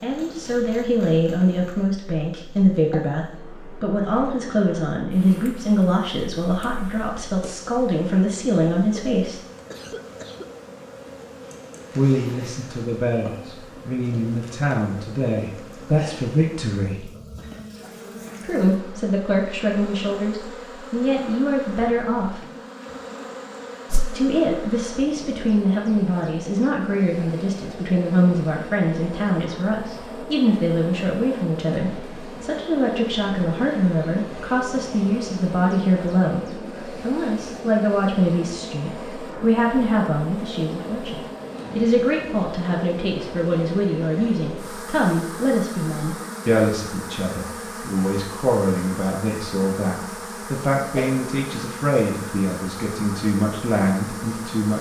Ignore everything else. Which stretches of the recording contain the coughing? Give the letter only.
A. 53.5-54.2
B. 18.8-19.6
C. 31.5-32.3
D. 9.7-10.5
D.